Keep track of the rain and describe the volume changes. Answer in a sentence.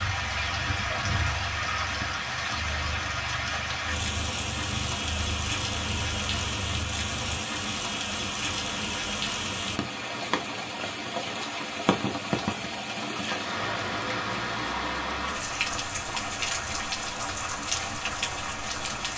The volume of the rain stays about the same.